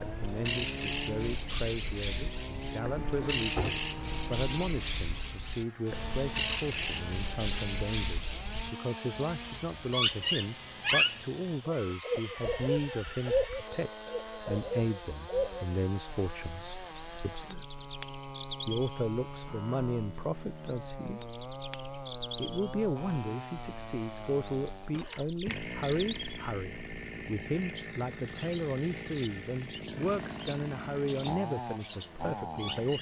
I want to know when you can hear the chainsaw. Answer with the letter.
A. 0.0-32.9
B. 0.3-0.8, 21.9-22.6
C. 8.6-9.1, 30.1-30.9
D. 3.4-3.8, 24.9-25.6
A.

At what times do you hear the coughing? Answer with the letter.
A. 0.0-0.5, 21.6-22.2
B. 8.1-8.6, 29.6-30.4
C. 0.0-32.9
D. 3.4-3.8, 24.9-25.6
D.